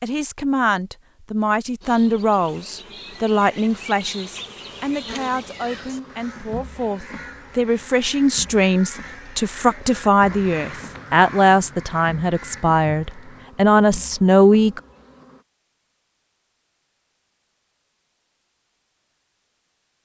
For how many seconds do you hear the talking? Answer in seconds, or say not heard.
15 s.